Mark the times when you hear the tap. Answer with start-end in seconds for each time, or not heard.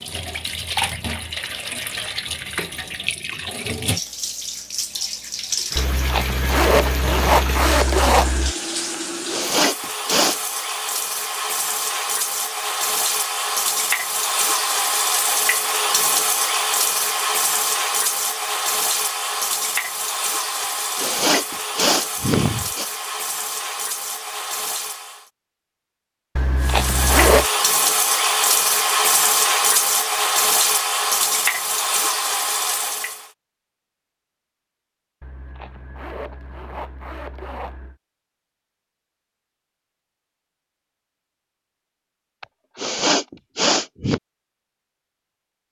0.0-25.3, 26.6-33.3.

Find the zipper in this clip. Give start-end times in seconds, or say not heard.
5.8-8.6, 26.4-27.4, 35.2-38.0.